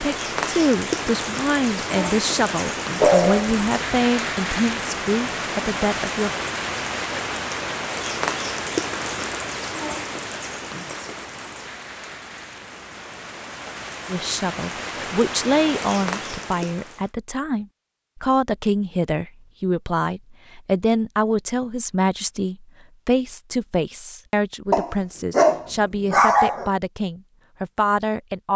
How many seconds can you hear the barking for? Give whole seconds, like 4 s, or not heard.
3 s.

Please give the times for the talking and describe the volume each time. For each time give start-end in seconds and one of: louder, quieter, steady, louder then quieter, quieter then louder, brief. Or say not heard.
0.0-6.3 steady
14.1-28.5 steady.